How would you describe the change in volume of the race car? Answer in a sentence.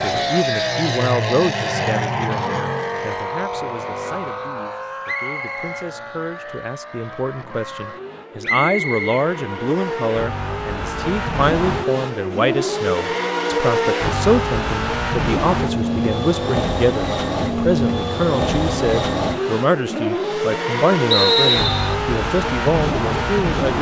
The volume of the race car goes down, then up.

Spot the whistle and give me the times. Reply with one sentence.
You can hear the whistle from 5.0 to 5.9 s, from 8.4 to 10.0 s and from 21.1 to 21.9 s.